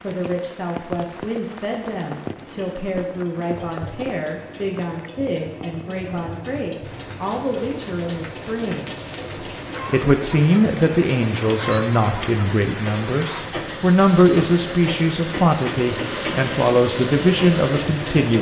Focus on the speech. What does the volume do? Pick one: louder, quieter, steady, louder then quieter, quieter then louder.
louder.